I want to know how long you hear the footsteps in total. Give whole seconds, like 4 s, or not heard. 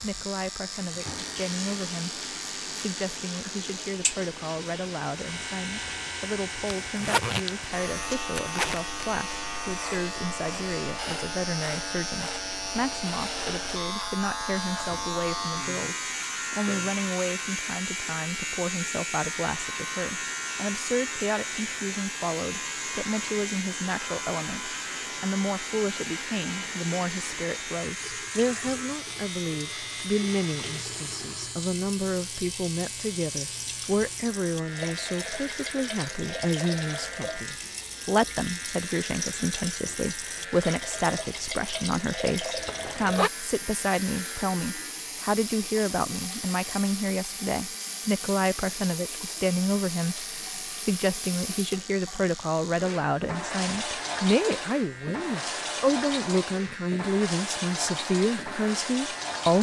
not heard.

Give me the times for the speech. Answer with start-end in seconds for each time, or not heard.
0.0-59.5.